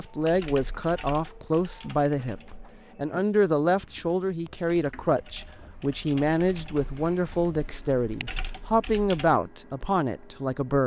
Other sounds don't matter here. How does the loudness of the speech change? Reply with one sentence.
The volume of the speech stays about the same.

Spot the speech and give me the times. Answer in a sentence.
The speech can be heard from 0.0 to 10.8 s.